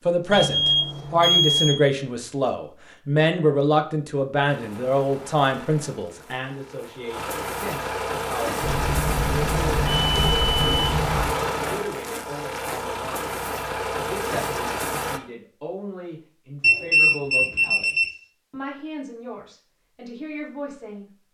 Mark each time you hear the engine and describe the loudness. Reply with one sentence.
The engine can be heard from 4.5 to 15.2 s, getting louder.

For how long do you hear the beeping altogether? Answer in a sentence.
You can hear the beeping for 6 seconds altogether.